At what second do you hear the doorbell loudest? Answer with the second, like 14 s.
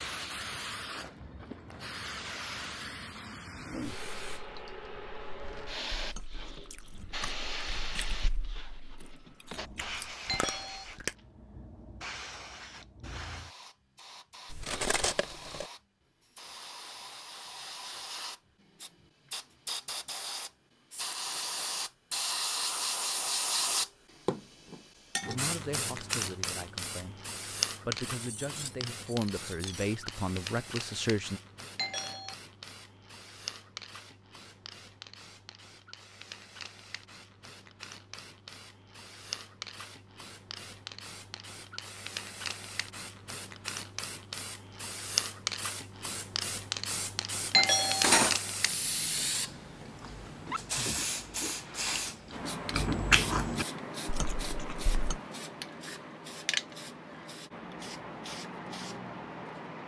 48 s.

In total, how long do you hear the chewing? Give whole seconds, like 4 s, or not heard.
11 s.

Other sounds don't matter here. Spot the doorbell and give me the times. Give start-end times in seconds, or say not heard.
10.2-10.8, 31.8-32.4, 47.5-48.1.